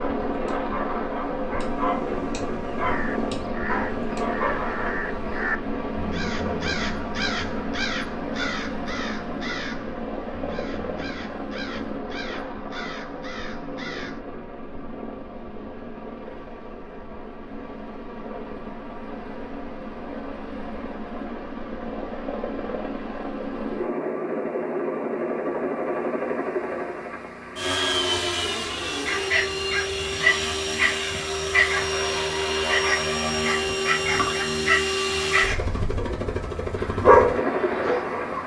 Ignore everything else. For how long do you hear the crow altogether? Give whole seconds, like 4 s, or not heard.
13 s.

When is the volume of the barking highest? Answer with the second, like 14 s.
37 s.